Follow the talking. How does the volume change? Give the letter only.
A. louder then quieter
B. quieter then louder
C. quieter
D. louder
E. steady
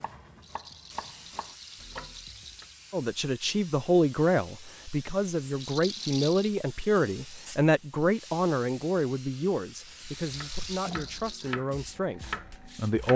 C.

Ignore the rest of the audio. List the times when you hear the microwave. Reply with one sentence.
The microwave can't be heard in this clip.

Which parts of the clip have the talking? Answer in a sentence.
You can hear the talking from 2.9 to 13.1 s.